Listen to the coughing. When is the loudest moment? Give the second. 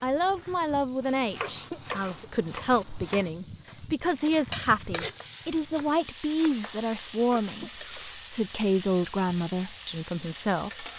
2 s.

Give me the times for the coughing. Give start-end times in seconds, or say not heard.
1.4-2.3, 7.4-8.1.